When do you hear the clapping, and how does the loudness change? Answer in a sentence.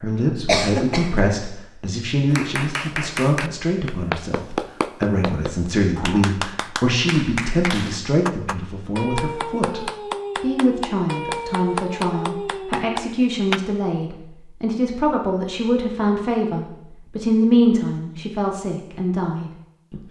The clapping can be heard from 2.3 to 13.6 s, at a steady volume.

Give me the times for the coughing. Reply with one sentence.
You can hear the coughing from 0.5 to 1.3 s.